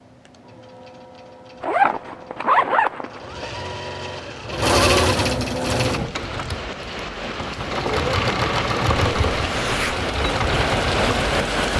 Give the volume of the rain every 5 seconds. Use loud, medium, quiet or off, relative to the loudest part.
off, medium, loud.